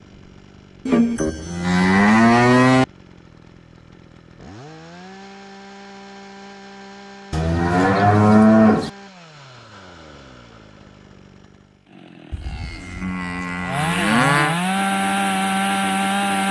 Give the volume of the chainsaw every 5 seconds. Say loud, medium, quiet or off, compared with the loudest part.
quiet, quiet, medium, loud.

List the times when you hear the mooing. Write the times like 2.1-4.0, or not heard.
0.8-2.9, 7.3-8.9, 12.3-14.6.